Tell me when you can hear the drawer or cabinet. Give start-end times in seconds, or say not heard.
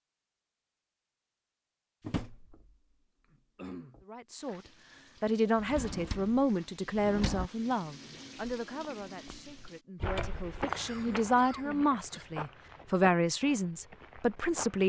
2.0-2.6, 5.5-7.5, 10.0-10.5.